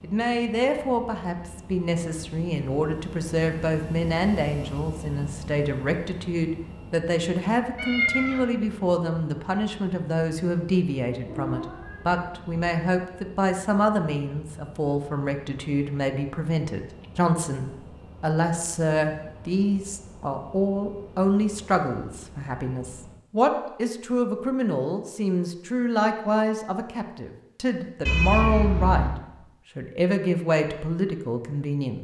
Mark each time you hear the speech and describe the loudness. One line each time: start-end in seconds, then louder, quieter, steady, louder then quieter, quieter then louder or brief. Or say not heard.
0.0-32.0 steady.